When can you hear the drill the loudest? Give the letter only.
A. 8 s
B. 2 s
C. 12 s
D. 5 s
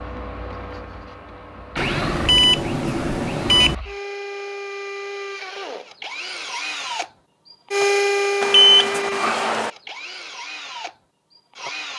A.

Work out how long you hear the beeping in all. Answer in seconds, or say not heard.
3 s.